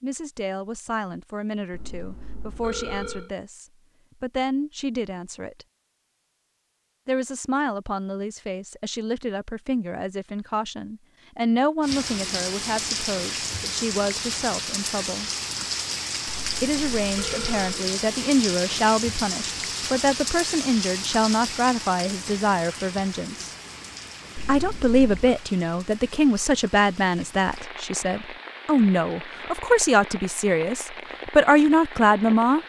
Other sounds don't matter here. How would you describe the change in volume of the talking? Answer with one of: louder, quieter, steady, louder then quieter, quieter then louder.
louder.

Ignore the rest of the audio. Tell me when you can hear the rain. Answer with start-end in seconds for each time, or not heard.
11.8-32.6.